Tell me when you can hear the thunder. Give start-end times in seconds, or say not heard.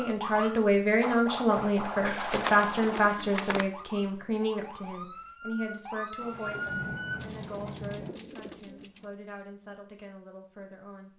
6.2-8.1.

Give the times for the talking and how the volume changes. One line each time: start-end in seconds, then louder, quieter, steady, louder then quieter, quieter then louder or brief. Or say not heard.
0.0-11.1 quieter.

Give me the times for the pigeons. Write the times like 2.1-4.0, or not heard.
2.0-3.6, 7.2-9.2.